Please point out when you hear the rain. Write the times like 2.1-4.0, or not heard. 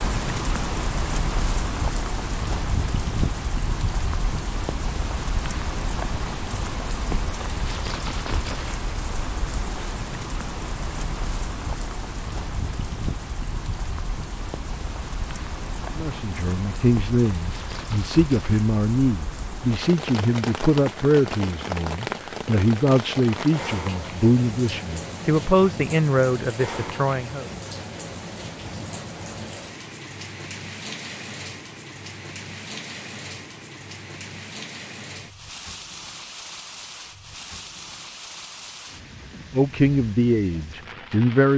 0.0-41.5.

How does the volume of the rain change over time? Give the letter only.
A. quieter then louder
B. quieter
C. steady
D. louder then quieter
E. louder
B.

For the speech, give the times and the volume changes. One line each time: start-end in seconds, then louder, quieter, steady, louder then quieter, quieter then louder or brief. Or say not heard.
15.9-27.4 steady
39.5-41.5 brief.